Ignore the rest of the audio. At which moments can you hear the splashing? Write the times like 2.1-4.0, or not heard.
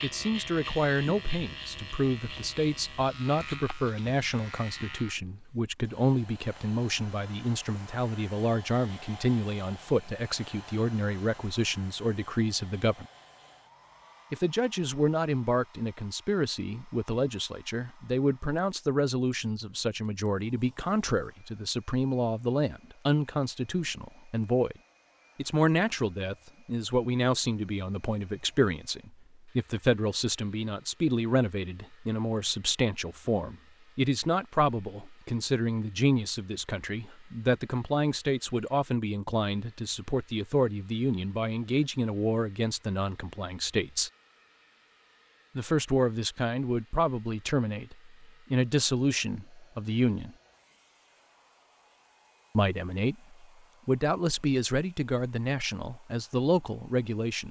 not heard.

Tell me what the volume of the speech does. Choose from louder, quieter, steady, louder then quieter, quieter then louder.
steady.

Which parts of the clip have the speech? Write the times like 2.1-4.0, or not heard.
0.0-13.1, 14.3-24.8, 25.4-44.1, 45.5-50.4, 52.5-57.4.